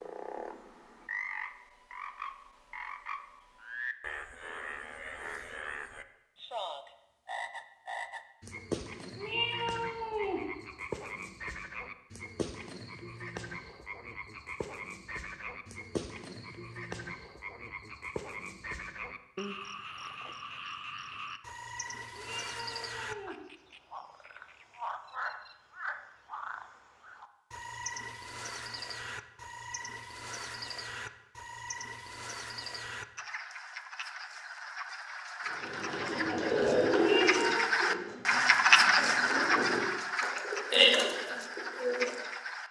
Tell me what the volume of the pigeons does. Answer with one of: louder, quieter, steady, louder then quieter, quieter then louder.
quieter then louder.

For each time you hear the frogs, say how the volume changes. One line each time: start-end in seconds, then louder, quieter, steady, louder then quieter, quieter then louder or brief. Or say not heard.
0.0-42.6 louder.